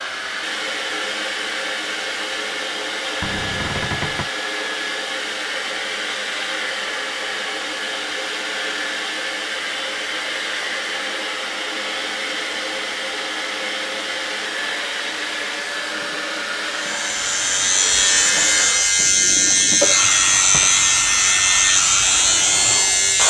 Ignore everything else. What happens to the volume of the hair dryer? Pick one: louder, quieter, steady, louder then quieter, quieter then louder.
steady.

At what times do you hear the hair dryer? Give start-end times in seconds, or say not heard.
0.0-23.2.